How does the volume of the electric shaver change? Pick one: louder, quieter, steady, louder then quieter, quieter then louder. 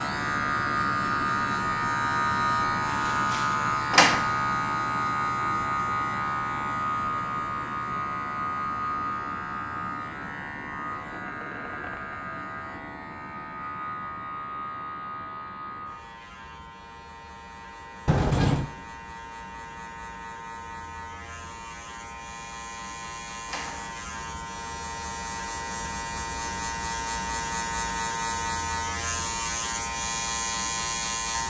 quieter then louder.